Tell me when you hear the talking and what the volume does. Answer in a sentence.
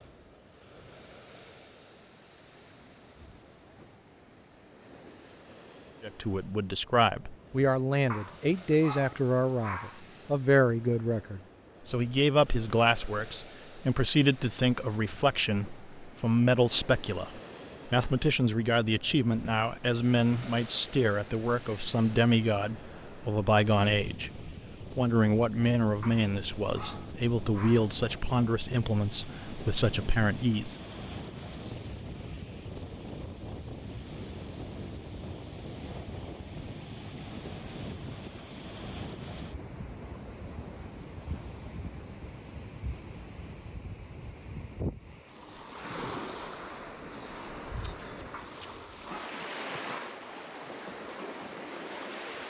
You can hear the talking from 6.0 to 30.8 s, at a steady volume.